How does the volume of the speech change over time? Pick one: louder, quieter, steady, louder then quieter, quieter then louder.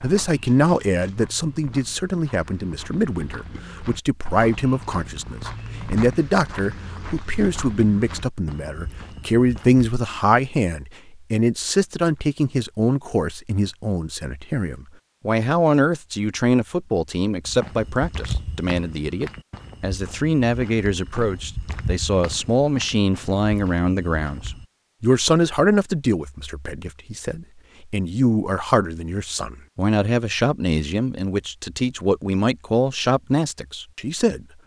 steady.